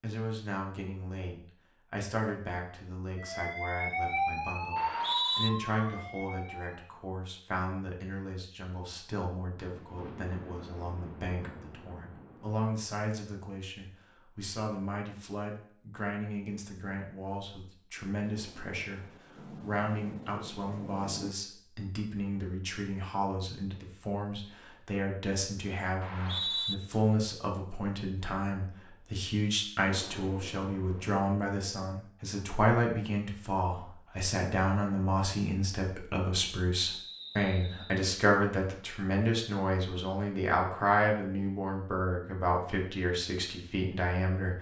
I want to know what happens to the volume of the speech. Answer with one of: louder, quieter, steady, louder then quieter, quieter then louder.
louder.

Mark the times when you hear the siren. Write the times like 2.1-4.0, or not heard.
3.1-6.8.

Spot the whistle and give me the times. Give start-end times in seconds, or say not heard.
4.8-5.5, 26.0-26.8, 36.9-37.9.